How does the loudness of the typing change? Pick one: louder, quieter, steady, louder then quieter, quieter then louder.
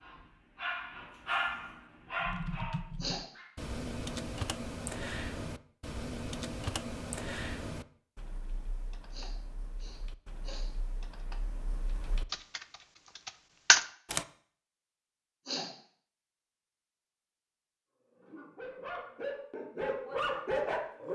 quieter then louder.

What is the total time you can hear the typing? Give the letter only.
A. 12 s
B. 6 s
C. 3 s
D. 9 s
A.